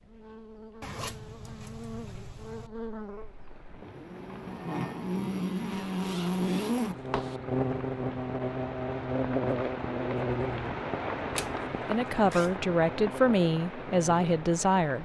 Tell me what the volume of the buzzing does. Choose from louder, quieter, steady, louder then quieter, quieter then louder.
louder then quieter.